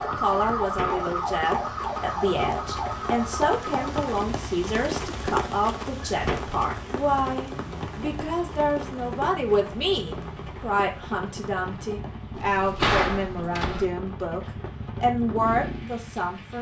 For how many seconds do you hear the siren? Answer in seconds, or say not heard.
4 s.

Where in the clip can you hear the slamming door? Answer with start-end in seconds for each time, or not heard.
0.6-1.1, 6.0-6.5, 12.3-13.8.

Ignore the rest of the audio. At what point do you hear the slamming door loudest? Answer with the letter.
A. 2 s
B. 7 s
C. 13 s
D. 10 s
C.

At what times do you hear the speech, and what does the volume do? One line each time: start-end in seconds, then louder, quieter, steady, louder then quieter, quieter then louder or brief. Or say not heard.
0.0-16.5 steady.